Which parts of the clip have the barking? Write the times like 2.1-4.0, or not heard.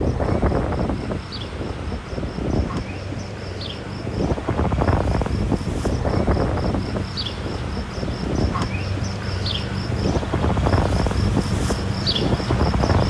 not heard.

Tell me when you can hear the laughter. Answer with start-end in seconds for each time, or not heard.
not heard.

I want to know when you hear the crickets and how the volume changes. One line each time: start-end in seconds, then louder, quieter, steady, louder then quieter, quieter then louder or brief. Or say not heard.
0.0-13.0 louder.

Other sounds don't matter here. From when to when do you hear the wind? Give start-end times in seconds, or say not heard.
0.0-13.0.